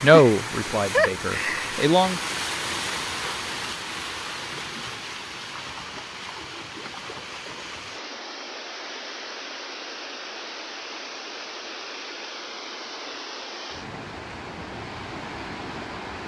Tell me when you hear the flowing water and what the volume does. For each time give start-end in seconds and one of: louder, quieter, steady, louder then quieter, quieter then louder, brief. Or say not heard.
0.0-16.2 quieter.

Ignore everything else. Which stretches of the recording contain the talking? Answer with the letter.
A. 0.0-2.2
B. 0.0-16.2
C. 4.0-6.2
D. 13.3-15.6
A.